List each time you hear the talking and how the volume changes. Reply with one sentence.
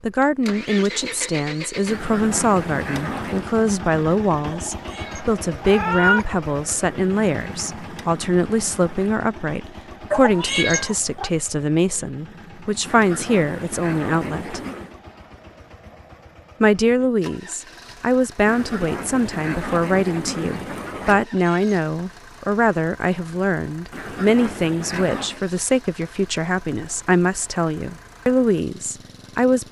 The talking can be heard from 0.0 to 14.6 s, at a steady volume; and from 16.6 to 29.6 s, at a steady volume.